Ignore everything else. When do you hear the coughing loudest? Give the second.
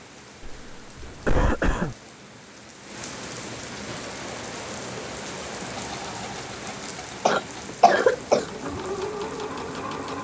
8 s.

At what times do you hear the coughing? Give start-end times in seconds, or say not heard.
0.4-1.9, 7.2-8.4.